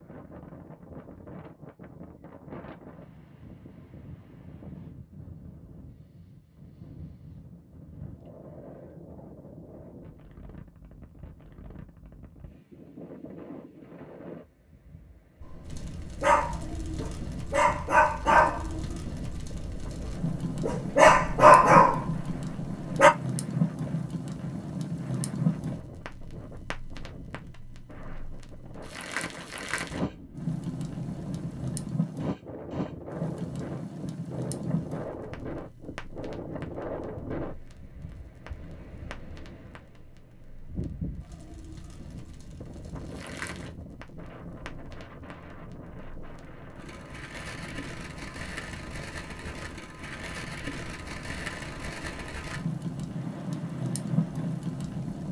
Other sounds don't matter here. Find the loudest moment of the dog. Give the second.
22 s.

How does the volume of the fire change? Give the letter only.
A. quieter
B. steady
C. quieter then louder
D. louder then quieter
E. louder
C.